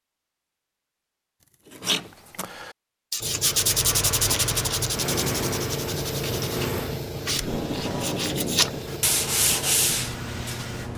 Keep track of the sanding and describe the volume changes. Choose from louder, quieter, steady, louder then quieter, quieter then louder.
quieter then louder.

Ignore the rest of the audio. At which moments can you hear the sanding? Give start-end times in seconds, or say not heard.
1.7-10.9.